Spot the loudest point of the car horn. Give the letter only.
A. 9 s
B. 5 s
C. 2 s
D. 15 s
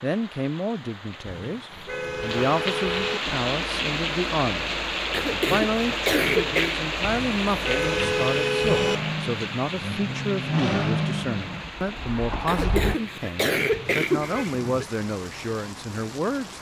A.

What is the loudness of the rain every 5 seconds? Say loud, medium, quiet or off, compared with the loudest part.
loud, loud, medium, medium.